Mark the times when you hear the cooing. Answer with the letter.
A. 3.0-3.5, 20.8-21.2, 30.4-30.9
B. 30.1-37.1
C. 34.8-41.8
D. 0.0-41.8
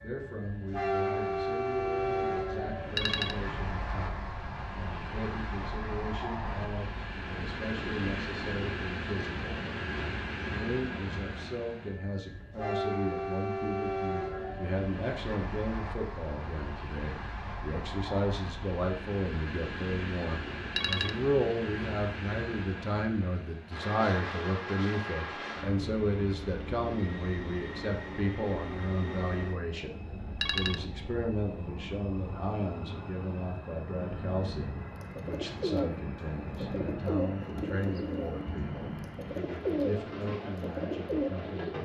C.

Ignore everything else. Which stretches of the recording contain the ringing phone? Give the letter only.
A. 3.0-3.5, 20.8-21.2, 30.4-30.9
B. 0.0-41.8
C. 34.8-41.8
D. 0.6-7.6
A.